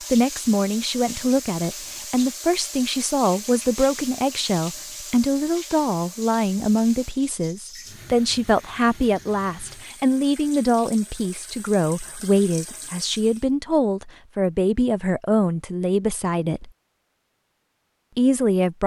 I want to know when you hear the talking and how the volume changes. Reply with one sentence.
You can hear the talking from 0.1 to 16.7 s, at a steady volume; and briefly from 18.1 to 18.8 s.